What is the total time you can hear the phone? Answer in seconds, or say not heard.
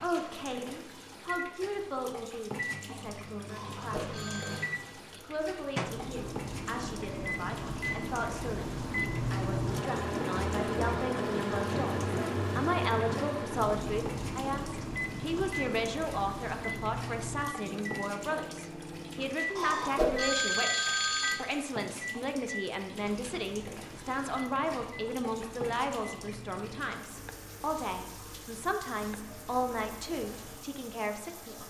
3 s.